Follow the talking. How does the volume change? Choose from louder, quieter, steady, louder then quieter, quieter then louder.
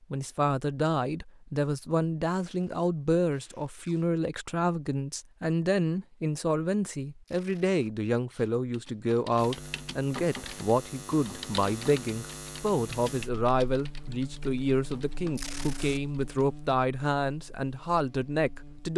steady.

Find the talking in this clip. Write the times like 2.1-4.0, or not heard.
0.1-18.9.